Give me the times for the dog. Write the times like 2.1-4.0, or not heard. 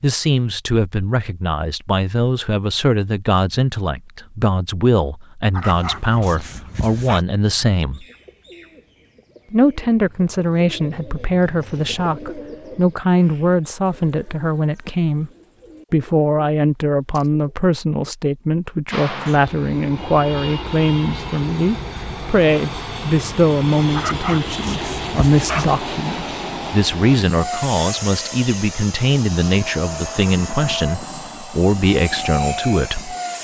5.5-7.2, 23.9-25.8.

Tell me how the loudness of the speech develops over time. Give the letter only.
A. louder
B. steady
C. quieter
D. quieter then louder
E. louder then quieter
B.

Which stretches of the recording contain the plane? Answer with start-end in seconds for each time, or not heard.
18.9-33.3.